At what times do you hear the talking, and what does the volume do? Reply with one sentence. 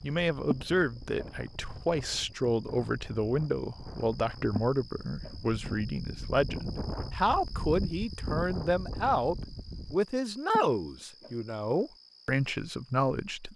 The talking can be heard from 0.0 to 13.5 s, at a steady volume.